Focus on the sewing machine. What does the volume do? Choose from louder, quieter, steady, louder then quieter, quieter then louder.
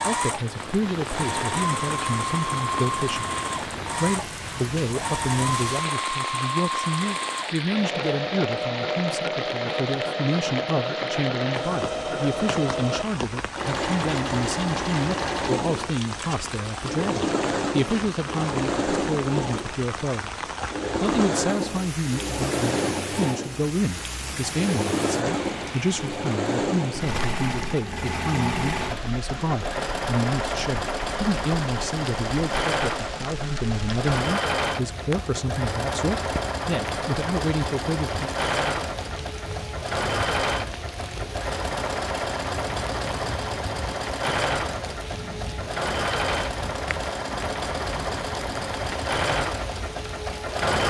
steady.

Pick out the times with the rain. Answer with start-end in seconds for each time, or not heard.
0.0-50.8.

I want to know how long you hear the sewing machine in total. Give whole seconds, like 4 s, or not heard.
51 s.